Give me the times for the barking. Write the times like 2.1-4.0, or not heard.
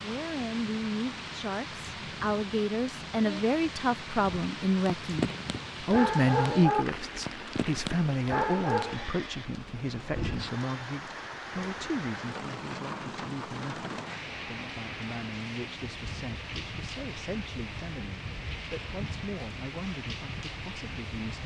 4.2-9.1.